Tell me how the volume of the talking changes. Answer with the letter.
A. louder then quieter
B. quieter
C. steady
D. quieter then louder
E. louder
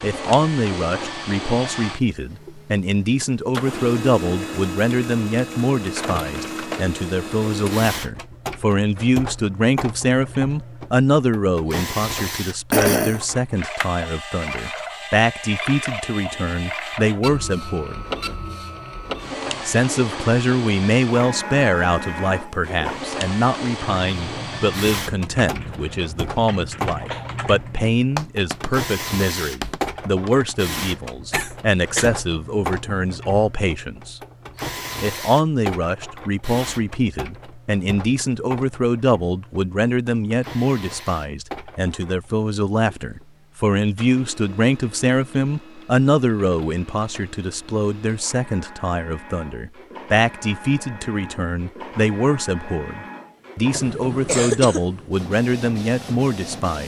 C.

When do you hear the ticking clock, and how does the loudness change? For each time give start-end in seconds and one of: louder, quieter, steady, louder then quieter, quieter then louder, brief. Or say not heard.
not heard.